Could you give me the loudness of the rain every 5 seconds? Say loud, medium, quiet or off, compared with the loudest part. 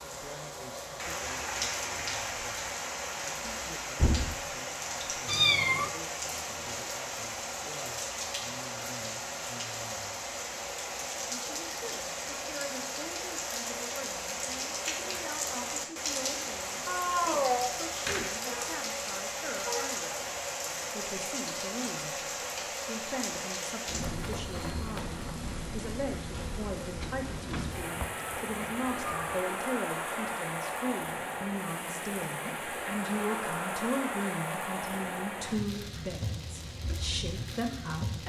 loud, loud, loud, loud, loud, loud, loud, medium.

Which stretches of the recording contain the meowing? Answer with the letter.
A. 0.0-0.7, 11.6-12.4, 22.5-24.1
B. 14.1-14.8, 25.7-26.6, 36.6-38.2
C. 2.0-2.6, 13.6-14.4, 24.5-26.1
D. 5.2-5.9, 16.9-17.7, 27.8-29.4
D.